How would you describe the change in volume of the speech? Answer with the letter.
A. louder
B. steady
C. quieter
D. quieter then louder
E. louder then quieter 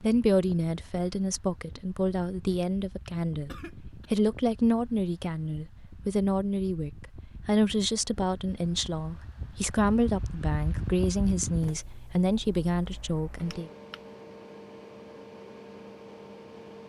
B.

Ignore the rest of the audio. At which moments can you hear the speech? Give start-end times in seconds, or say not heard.
0.0-13.7.